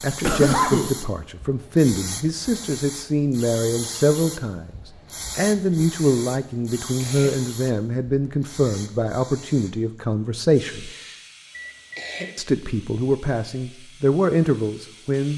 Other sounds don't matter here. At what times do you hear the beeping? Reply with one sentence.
You can hear the beeping from 11.5 to 12.3 s.